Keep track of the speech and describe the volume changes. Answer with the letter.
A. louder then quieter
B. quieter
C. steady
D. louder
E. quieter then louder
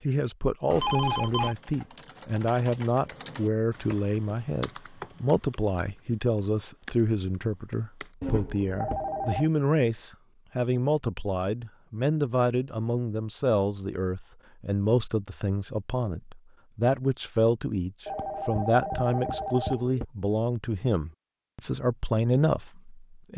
C.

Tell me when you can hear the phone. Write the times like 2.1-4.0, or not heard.
0.7-1.6, 8.2-9.5, 18.1-20.1.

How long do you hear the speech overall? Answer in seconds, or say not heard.
23 s.